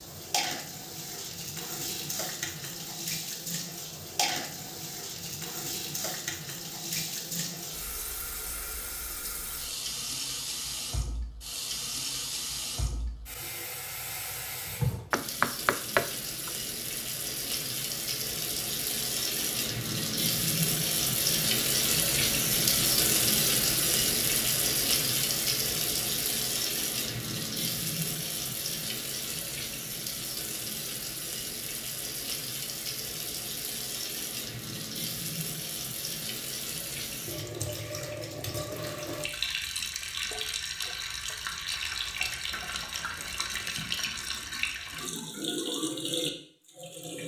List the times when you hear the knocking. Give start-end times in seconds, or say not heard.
15.1-16.5.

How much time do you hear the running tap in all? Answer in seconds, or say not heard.
47 s.